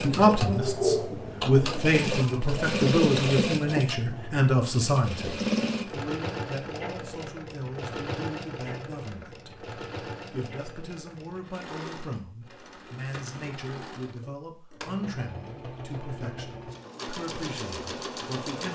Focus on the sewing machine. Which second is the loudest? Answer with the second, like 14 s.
3 s.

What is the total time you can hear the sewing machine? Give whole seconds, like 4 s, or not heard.
19 s.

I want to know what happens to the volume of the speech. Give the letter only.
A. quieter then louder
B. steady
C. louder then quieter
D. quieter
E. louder
D.